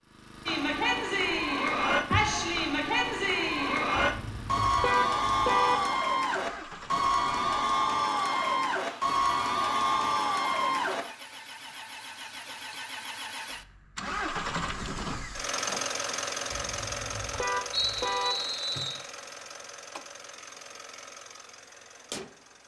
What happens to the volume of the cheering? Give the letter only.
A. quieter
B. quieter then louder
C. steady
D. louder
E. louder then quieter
C.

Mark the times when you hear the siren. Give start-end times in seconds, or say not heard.
not heard.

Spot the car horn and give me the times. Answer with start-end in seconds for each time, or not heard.
4.0-5.8, 16.5-18.4.